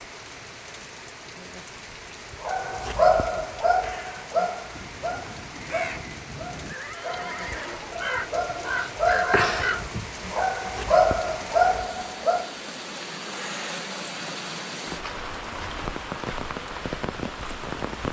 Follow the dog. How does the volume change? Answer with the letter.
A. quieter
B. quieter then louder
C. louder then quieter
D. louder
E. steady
B.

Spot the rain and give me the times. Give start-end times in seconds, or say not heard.
0.0-18.0.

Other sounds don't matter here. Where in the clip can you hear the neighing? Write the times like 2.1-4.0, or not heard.
6.6-8.0.